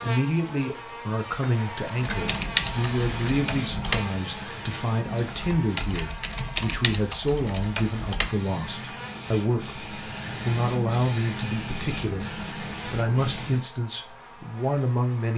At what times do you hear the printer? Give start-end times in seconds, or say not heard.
1.9-13.7.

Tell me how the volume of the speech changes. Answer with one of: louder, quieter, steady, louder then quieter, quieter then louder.
steady.